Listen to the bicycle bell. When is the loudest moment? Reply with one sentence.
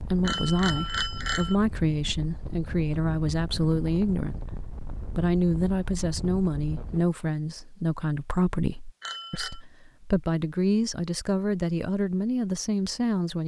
The volume of the bicycle bell peaks at 1 second.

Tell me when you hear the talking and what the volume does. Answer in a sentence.
You can hear the talking from 0.0 to 13.4 s, at a steady volume.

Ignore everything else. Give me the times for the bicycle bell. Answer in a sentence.
The bicycle bell can be heard from 0.2 to 1.6 s and from 9.0 to 9.6 s.